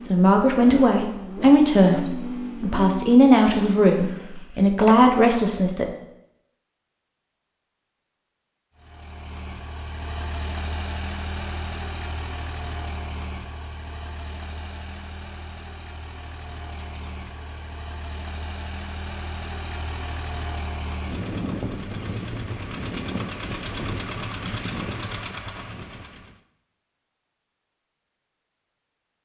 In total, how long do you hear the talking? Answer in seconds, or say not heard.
6 s.